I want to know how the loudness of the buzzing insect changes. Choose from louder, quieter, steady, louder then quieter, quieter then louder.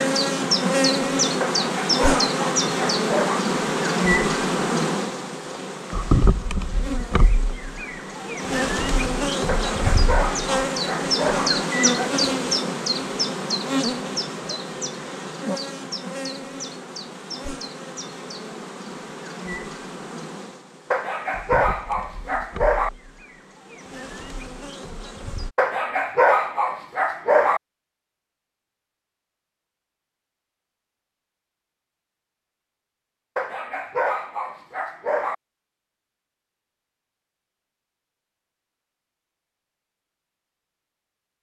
quieter.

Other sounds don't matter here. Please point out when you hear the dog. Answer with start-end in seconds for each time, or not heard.
1.4-3.4, 9.4-11.5, 20.9-22.9, 25.6-27.6, 33.4-35.4.